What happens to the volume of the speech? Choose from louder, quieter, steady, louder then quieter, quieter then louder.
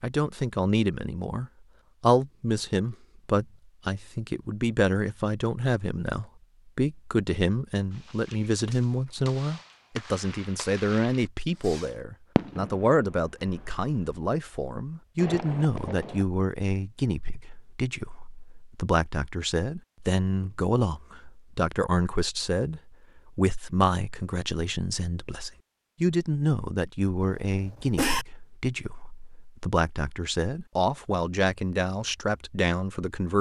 steady.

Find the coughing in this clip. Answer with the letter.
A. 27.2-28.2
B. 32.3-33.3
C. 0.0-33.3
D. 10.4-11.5
A.